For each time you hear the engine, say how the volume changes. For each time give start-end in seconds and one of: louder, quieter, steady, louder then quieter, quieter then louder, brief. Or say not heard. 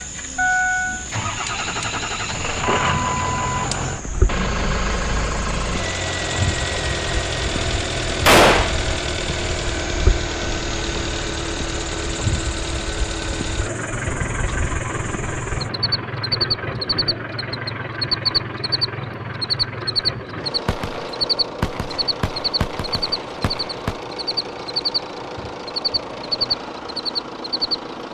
0.0-28.0 quieter.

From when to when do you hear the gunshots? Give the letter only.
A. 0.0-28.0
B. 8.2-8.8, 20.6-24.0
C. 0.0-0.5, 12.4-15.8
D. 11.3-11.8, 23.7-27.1
B.